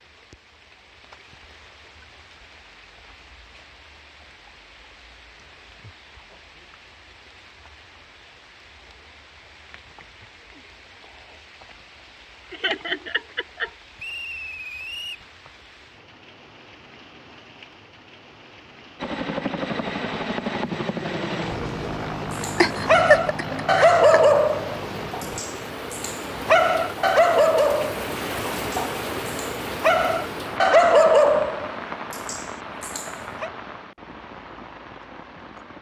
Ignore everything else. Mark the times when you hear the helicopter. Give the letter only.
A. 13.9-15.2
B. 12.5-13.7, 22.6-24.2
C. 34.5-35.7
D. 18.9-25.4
D.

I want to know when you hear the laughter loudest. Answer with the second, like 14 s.
23 s.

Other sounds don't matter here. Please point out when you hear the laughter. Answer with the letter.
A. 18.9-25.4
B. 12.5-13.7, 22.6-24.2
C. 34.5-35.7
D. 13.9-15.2
B.